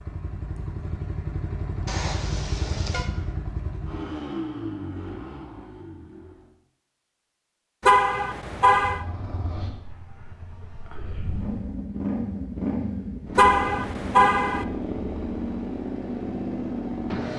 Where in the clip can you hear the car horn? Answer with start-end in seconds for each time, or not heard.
1.9-3.1, 7.8-9.1, 13.3-14.7.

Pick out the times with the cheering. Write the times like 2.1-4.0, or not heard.
not heard.